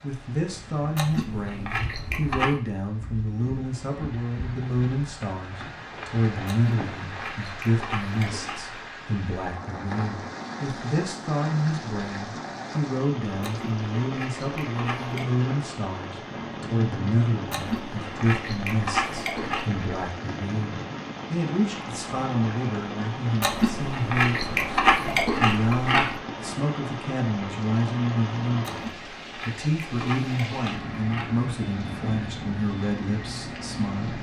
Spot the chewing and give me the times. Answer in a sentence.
The chewing can be heard from 0.9 to 2.5 s, from 6.5 to 8.8 s, from 13.4 to 15.3 s, from 17.5 to 19.9 s, from 23.4 to 26.2 s and from 28.6 to 31.4 s.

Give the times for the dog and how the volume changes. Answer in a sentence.
You can't hear the dog here.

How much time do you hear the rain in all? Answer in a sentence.
You can hear the rain for 34 seconds altogether.